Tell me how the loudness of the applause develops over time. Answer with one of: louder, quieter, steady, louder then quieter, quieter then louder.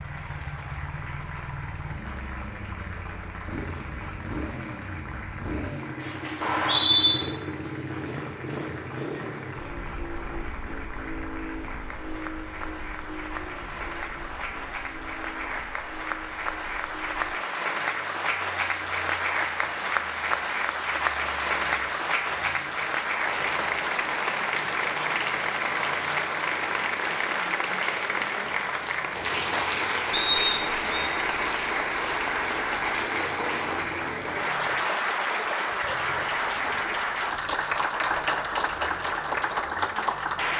louder.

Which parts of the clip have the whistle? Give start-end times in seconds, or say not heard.
6.4-7.2, 30.1-31.1.